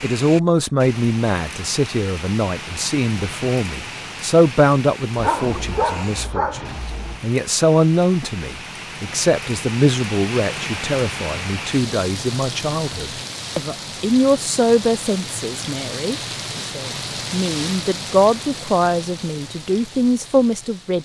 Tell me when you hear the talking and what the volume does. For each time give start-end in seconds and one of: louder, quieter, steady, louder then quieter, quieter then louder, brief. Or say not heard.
0.0-21.0 steady.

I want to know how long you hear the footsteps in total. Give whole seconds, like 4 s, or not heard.
not heard.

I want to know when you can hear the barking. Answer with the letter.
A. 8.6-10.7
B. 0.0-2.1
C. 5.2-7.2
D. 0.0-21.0
C.